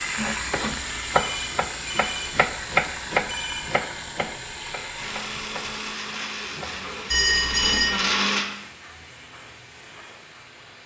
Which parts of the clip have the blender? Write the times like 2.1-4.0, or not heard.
5.0-8.5.